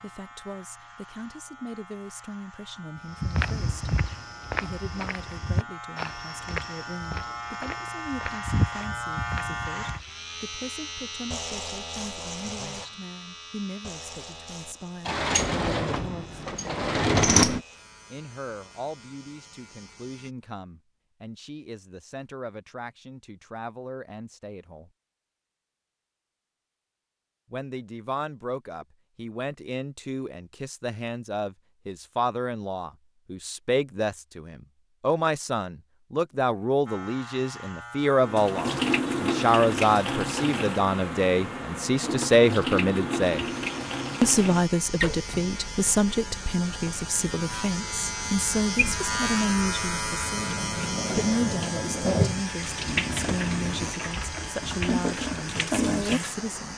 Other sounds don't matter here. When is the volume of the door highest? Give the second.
17 s.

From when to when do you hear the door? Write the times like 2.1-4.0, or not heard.
15.1-17.6.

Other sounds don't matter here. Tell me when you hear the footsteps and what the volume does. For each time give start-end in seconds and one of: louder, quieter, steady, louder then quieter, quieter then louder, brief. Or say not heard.
3.2-10.1 quieter then louder.